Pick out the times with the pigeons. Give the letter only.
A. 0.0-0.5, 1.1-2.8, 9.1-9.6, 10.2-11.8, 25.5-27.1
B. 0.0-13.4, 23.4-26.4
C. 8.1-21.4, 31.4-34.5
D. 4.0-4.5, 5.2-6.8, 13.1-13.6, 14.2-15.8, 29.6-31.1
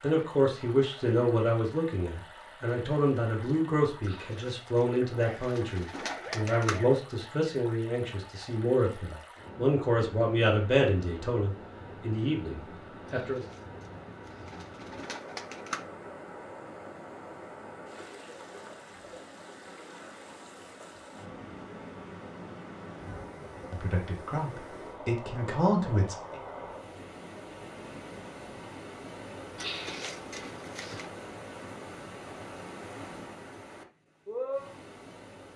D.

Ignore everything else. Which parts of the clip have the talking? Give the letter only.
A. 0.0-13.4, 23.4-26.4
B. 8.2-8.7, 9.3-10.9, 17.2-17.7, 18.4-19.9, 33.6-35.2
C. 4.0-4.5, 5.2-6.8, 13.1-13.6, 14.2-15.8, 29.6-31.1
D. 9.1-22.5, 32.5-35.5
A.